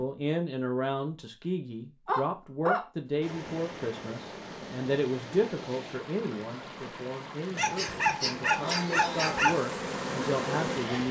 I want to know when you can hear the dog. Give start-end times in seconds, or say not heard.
2.0-2.9, 7.5-9.6.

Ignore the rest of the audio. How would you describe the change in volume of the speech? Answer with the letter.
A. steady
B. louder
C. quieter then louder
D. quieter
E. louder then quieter
C.